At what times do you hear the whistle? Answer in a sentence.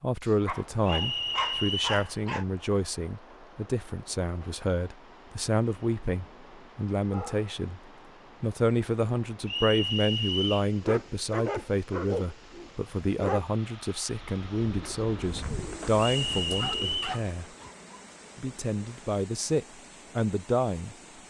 You can hear the whistle from 0.8 to 2.1 s, from 9.4 to 10.7 s and from 16.0 to 17.2 s.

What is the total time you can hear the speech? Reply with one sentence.
The speech can be heard for 20 seconds in total.